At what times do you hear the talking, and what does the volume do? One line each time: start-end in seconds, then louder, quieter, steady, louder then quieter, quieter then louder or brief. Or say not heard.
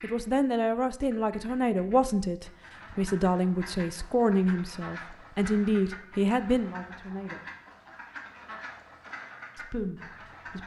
0.0-7.4 steady
9.6-10.6 brief.